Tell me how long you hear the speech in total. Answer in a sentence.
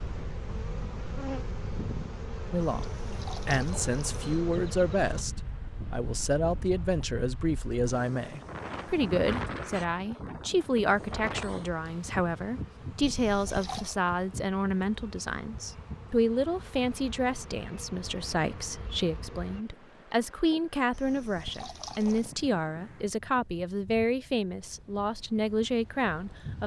You can hear the speech for 24 seconds altogether.